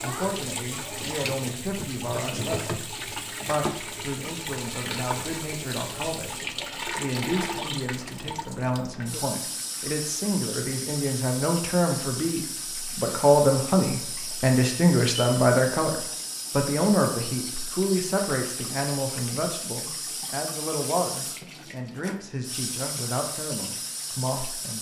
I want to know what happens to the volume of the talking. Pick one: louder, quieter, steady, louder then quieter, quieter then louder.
louder then quieter.